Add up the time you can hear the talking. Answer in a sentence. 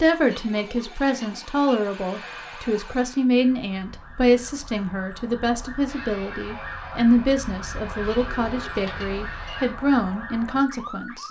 You can hear the talking for 11 seconds altogether.